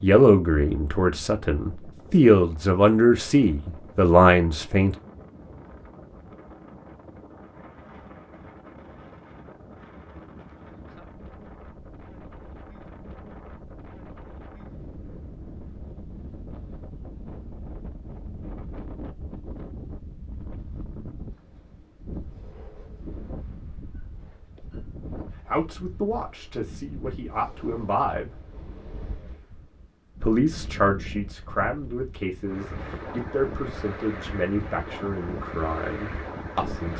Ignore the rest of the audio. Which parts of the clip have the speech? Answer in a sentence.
The speech can be heard from 0.0 to 5.0 s, from 25.4 to 28.4 s and from 30.2 to 36.9 s.